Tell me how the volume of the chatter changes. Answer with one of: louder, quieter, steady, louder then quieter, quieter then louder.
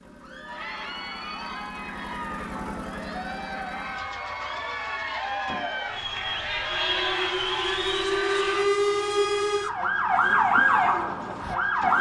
louder.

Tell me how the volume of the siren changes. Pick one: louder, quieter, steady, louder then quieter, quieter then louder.
louder.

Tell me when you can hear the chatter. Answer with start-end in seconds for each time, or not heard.
0.1-8.7.